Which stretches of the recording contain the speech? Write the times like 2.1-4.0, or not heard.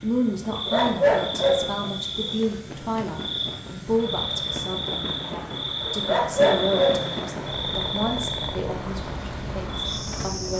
0.0-10.5.